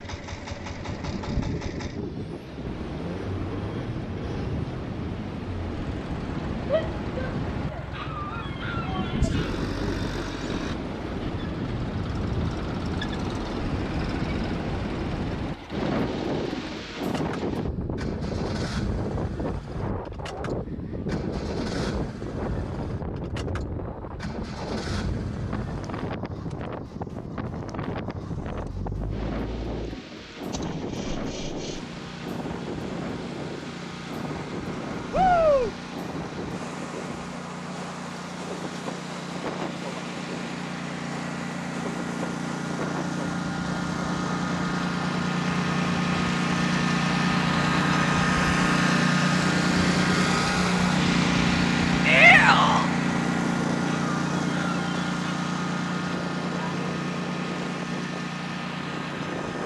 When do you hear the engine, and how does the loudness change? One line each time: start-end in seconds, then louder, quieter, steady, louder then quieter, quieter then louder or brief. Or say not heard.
0.0-59.6 louder.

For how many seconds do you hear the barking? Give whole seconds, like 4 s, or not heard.
3 s.